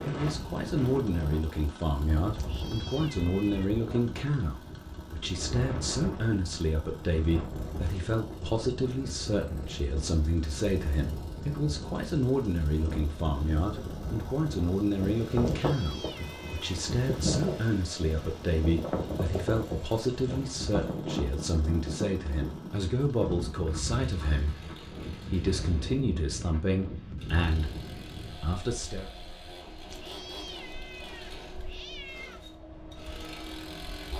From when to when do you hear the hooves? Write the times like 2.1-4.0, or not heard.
not heard.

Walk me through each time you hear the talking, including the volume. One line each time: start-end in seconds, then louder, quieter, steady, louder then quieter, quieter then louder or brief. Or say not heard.
0.1-29.1 steady.